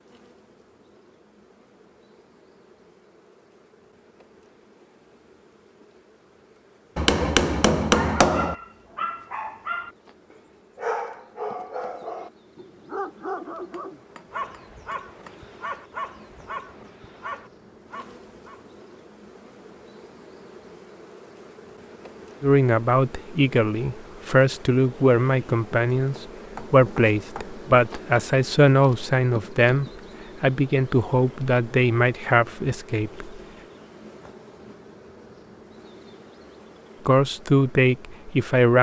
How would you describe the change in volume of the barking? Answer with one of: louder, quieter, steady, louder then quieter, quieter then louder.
quieter.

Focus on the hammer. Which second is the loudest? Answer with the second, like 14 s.
8 s.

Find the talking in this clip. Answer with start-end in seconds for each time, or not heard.
22.4-33.2, 37.0-38.7.